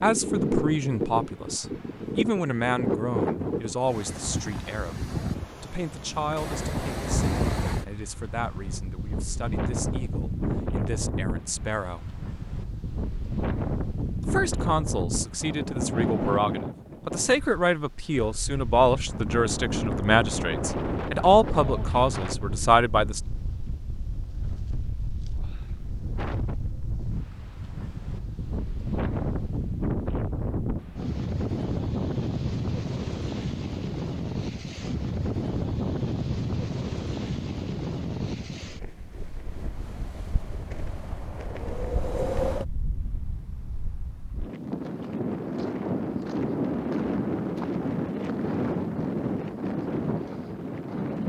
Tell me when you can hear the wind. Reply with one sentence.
The wind can be heard from 0.0 to 51.2 s.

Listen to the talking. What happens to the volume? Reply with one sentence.
The volume of the talking goes down, then up.